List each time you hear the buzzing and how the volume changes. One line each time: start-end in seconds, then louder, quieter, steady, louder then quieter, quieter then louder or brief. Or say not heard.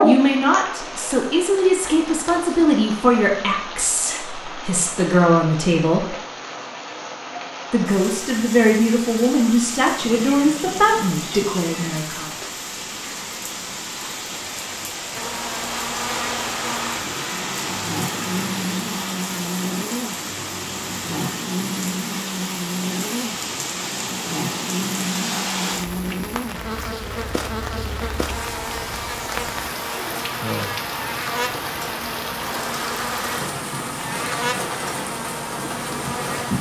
15.2-36.5 steady.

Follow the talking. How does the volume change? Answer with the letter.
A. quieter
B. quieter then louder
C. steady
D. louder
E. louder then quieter
C.